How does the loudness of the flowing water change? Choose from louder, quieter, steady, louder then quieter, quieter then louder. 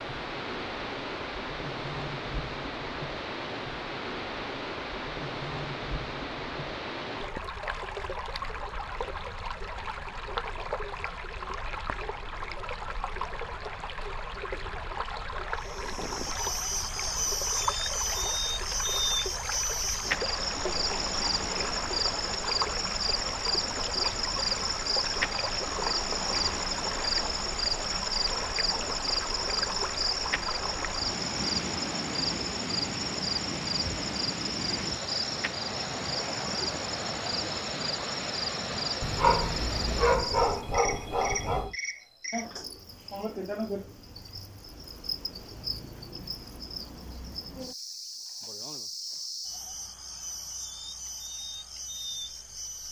steady.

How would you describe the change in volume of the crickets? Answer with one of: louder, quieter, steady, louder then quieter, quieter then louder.
quieter.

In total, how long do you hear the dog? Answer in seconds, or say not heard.
3 s.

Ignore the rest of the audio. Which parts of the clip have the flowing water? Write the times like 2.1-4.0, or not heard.
0.0-40.2.